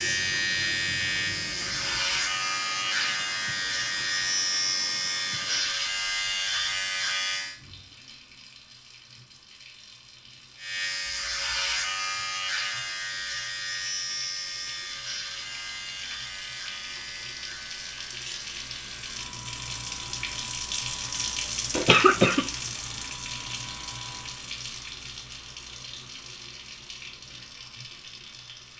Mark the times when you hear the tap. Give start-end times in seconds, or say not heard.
0.0-28.7.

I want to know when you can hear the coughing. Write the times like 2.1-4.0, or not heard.
21.7-22.4.